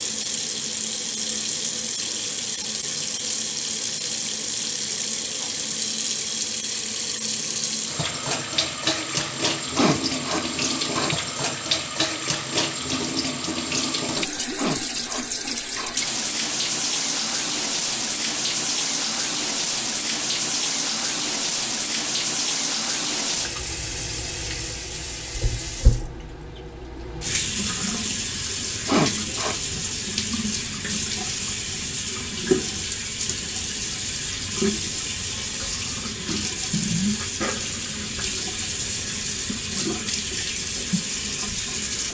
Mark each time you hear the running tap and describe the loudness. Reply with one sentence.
You can hear the running tap from 0.0 to 42.0 s, at a steady volume.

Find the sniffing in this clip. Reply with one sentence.
The sniffing can be heard from 9.8 to 11.2 s, from 14.6 to 16.0 s and from 28.9 to 29.7 s.